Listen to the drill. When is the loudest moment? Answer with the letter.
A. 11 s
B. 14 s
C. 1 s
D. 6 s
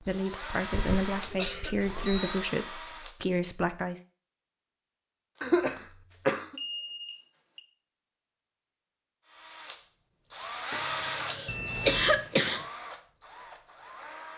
A.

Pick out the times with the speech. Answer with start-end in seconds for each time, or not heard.
0.0-4.0.